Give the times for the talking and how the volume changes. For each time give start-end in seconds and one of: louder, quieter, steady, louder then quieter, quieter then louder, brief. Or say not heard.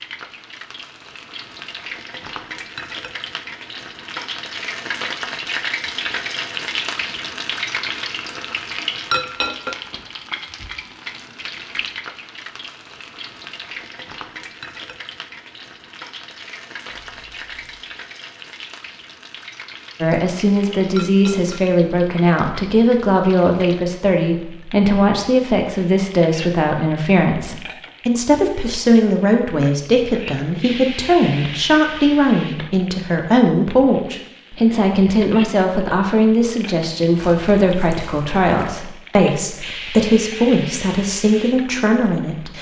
20.0-42.5 steady.